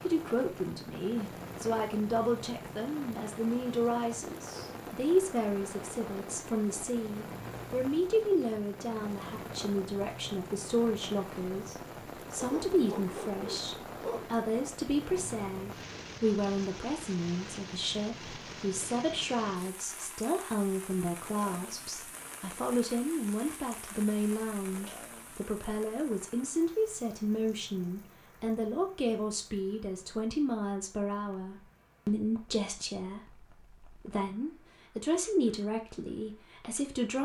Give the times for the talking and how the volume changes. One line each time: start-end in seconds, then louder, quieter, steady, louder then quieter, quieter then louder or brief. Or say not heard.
0.0-37.2 steady.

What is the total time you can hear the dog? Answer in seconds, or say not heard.
2 s.